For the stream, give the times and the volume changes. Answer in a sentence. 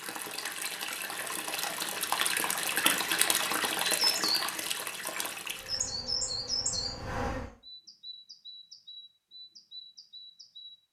The stream can be heard from 0.0 to 5.9 s, getting louder then quieter.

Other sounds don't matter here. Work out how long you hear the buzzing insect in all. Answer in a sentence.
The buzzing insect can be heard for 2 seconds in total.